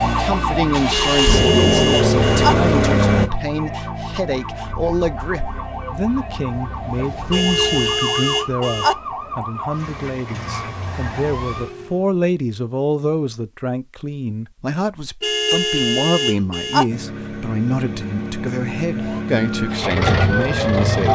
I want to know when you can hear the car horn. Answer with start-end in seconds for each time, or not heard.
0.9-2.5, 7.3-8.9, 15.2-16.9.